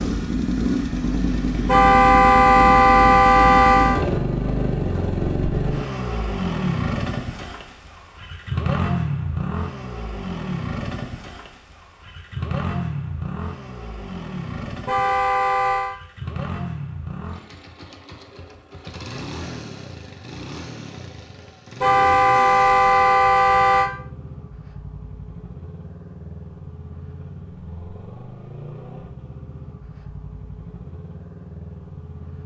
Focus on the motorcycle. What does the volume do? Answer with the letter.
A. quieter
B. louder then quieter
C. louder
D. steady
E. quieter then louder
A.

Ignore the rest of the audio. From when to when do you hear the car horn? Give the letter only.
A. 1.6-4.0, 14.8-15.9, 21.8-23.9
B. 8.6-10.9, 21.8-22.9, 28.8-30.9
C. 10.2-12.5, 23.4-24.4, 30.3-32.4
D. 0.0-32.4
A.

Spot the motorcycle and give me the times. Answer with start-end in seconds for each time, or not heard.
0.0-32.4.